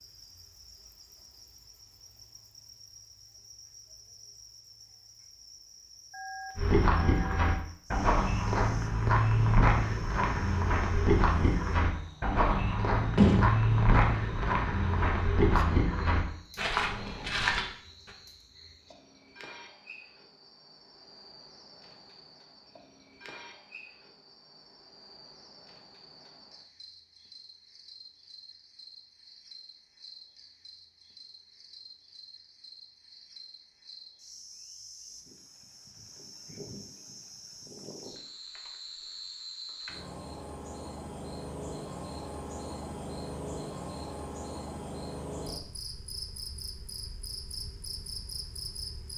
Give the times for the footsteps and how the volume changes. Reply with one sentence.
You can hear the footsteps from 6.5 to 18.1 s, at a steady volume.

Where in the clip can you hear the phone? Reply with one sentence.
You can hear the phone from 6.1 to 7.5 s.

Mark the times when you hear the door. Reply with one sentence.
The door can be heard from 13.2 to 14.4 s.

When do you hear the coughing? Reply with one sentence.
You can't hear the coughing here.